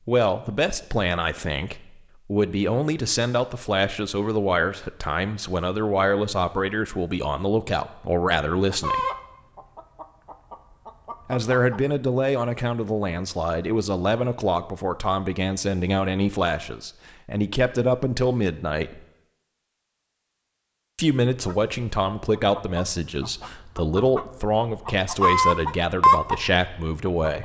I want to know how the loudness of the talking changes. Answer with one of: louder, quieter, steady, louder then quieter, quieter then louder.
steady.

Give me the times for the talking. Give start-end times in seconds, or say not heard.
0.1-9.1, 11.2-19.0, 20.9-27.4.